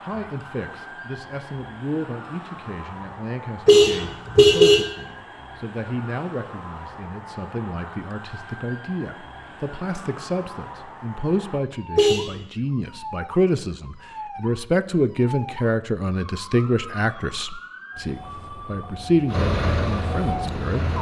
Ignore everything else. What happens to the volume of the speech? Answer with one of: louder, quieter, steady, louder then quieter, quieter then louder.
louder.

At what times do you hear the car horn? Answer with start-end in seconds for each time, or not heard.
3.6-4.9, 11.9-12.4.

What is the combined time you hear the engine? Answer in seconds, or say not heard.
2 s.